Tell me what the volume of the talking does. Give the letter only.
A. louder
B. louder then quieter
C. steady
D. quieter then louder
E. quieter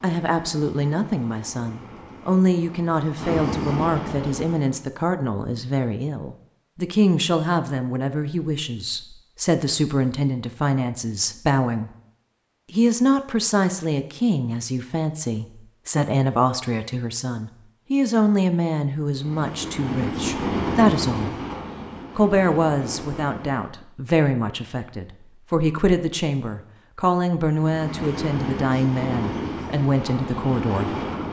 C.